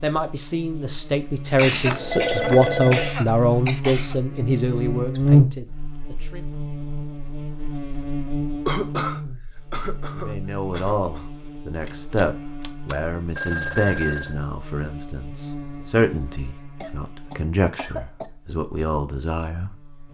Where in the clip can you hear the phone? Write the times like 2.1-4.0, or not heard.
1.6-3.1, 11.8-14.4.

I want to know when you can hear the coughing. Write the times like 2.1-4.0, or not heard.
1.5-4.2, 8.7-11.3, 16.8-18.3.